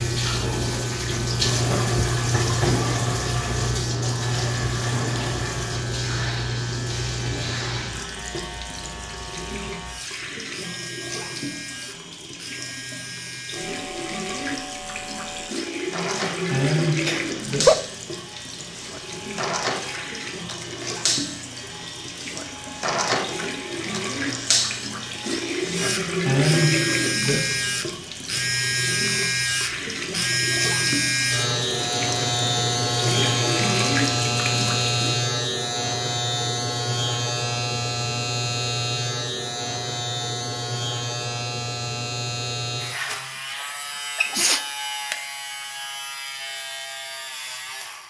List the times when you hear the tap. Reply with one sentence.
You can hear the tap from 0.0 to 35.2 s.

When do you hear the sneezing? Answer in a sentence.
You can hear the sneezing from 17.1 to 17.8 s and from 42.8 to 44.6 s.